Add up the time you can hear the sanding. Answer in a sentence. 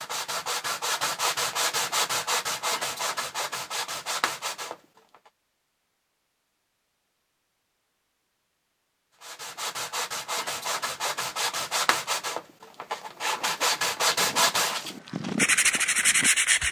You can hear the sanding for 13 seconds altogether.